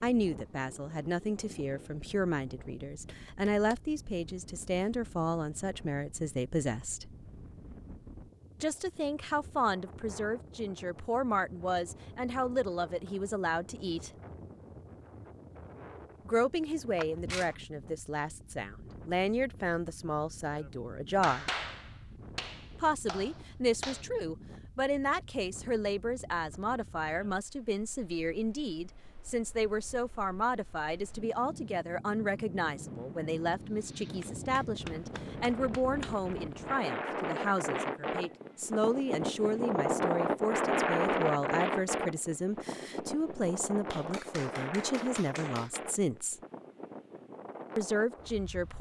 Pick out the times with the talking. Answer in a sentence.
You can hear the talking from 0.0 to 7.0 s, from 8.6 to 14.1 s, from 16.2 to 21.5 s, from 22.8 to 46.4 s and from 47.8 to 48.7 s.